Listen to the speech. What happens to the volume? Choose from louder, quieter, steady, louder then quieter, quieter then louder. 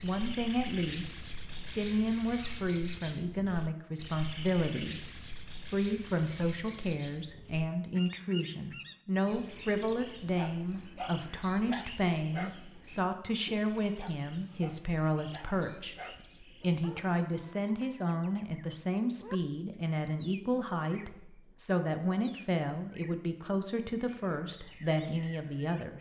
steady.